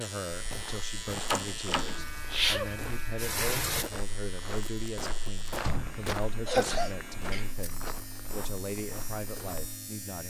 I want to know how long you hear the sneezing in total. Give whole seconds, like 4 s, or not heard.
2 s.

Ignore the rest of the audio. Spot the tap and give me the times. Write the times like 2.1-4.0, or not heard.
1.9-3.9.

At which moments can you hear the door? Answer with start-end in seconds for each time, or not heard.
1.2-1.9, 5.5-6.5.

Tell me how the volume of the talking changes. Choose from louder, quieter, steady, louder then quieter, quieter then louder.
steady.